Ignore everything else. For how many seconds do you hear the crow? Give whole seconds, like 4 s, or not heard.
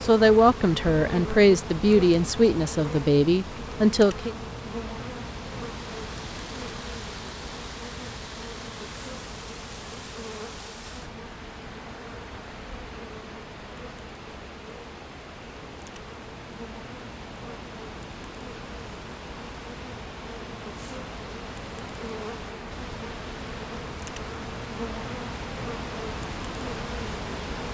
not heard.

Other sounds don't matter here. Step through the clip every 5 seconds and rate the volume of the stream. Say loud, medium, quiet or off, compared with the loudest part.
off, loud, loud, loud, loud, loud.